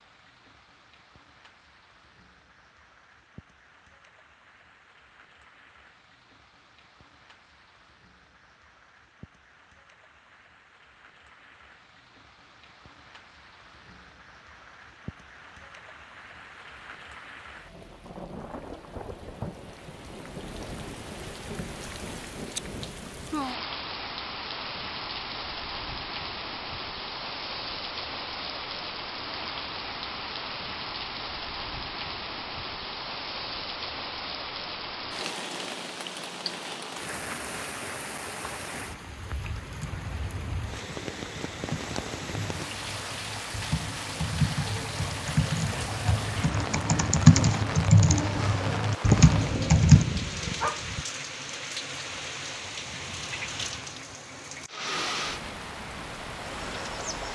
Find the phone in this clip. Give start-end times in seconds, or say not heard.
not heard.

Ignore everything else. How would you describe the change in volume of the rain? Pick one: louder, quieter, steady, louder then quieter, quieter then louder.
louder.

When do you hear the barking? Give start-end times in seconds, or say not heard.
49.0-51.0.